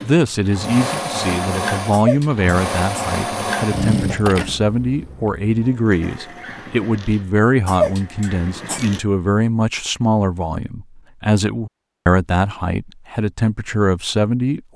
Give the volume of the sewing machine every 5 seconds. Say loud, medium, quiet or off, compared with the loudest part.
loud, quiet, off.